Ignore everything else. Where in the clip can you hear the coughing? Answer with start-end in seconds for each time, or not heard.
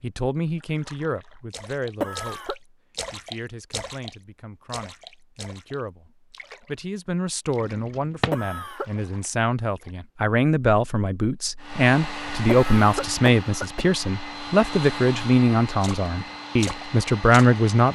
2.0-2.5, 8.3-8.8, 12.4-13.9.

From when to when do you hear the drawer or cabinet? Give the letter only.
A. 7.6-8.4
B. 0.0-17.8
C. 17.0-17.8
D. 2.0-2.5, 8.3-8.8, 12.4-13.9
A.